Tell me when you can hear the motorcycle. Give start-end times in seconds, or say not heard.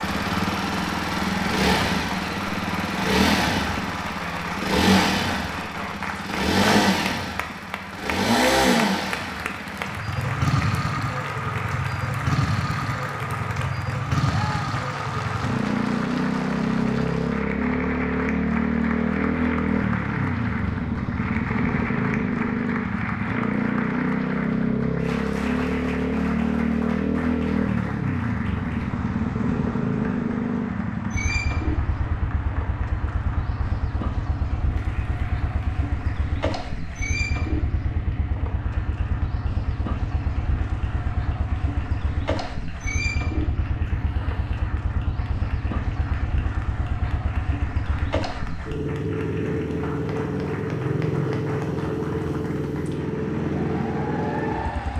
0.0-54.9.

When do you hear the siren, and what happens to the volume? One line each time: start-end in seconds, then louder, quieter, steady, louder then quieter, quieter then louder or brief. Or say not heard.
not heard.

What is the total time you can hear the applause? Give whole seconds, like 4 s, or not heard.
55 s.